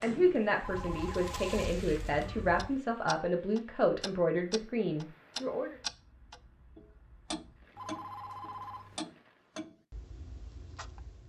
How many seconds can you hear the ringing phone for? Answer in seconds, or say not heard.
2 s.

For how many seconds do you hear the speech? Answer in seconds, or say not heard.
6 s.